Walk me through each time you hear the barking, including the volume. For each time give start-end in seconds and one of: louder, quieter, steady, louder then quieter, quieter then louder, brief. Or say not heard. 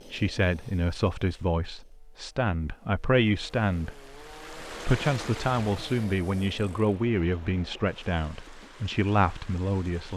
not heard.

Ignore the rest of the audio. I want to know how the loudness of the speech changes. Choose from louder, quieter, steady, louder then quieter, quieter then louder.
steady.